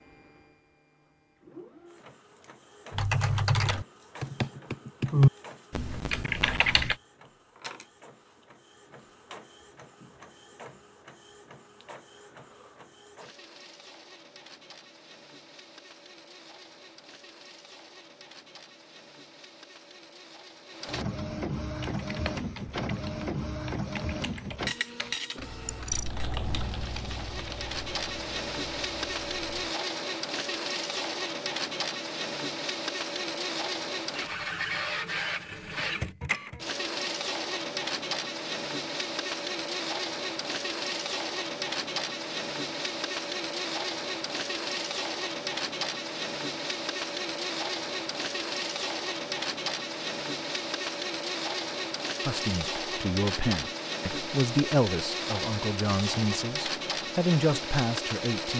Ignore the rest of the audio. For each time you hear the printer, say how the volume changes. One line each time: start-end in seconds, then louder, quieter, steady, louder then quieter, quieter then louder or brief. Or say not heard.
0.0-58.5 louder.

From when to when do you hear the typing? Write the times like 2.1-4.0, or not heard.
2.9-7.0, 21.8-29.8.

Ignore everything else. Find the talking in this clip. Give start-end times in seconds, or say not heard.
52.2-58.5.